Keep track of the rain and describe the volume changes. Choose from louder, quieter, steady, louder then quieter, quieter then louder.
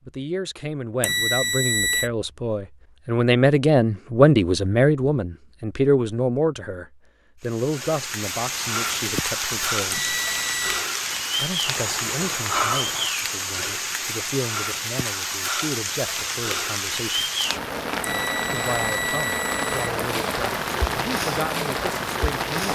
steady.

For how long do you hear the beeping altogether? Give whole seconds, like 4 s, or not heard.
4 s.